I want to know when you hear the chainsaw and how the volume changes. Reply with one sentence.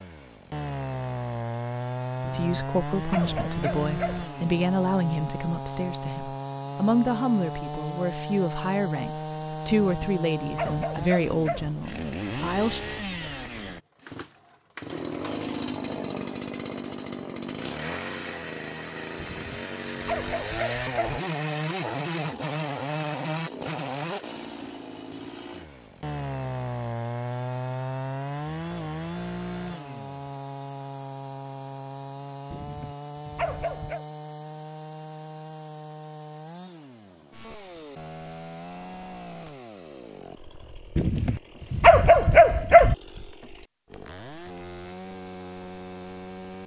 The chainsaw can be heard from 0.0 to 46.6 s, getting quieter.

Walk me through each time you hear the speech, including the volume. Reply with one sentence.
You can hear the speech from 2.3 to 12.8 s, at a steady volume.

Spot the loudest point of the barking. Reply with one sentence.
The loudest moment of the barking is at 42 seconds.